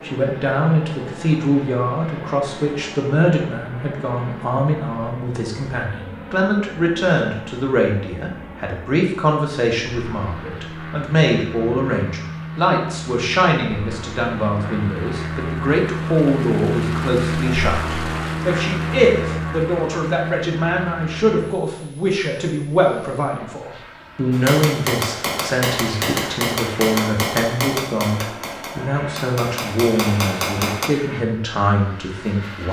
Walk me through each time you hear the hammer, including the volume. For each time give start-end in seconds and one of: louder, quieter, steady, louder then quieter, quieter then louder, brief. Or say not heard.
24.3-30.9 quieter then louder.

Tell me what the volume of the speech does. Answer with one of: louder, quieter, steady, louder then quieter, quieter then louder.
steady.